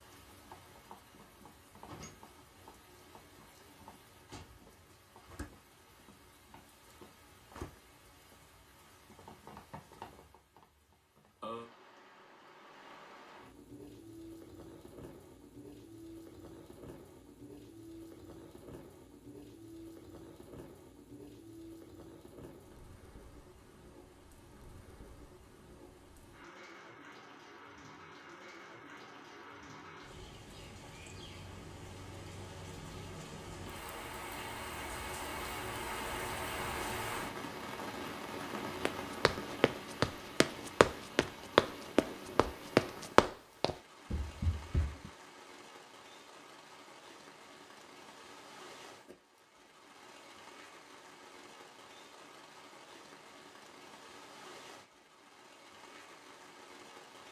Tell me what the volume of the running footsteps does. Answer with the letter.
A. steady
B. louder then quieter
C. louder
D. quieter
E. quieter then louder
B.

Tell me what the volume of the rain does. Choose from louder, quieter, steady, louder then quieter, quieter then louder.
louder then quieter.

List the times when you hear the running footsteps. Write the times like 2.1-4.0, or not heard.
38.9-45.1.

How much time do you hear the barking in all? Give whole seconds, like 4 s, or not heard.
not heard.